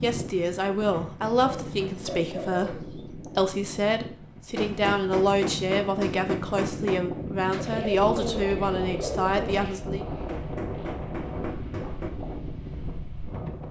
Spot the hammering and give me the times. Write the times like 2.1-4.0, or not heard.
0.8-2.9, 4.5-7.0, 10.2-12.2.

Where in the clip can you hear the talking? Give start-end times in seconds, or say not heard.
0.0-10.1.